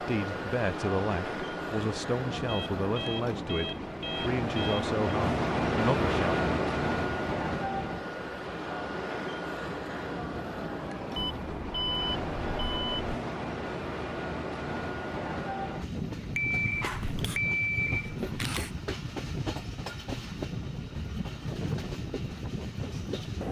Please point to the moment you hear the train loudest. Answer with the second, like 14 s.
6 s.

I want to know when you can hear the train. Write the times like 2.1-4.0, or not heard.
0.0-23.4.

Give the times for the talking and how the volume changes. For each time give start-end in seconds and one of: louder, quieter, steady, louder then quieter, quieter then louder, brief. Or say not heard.
0.1-6.4 steady.